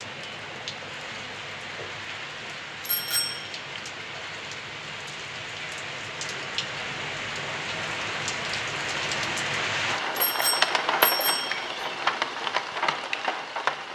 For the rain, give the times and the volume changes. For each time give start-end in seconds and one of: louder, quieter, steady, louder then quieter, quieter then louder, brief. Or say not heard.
0.0-13.9 louder.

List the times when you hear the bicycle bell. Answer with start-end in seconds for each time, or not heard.
2.8-3.5, 10.2-11.6.